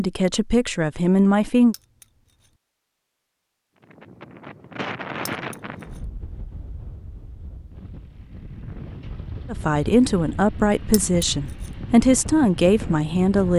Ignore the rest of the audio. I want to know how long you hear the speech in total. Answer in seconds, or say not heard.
6 s.